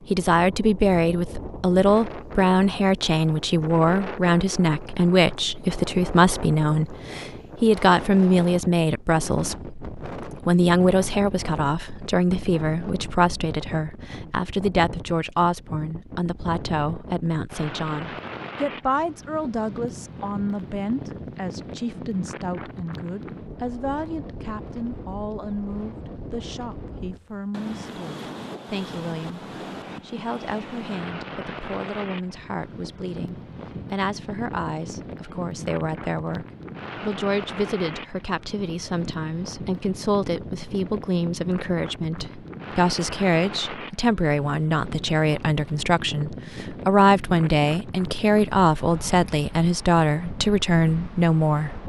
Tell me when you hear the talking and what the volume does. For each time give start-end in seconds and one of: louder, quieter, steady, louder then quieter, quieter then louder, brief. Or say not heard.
0.1-51.8 quieter then louder.